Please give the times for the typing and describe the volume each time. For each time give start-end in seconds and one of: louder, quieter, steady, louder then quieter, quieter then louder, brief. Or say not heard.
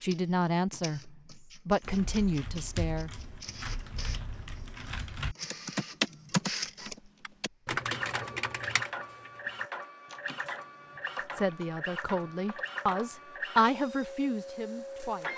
1.8-13.2 louder then quieter.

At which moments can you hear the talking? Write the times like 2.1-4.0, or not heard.
0.0-3.2, 11.3-15.3.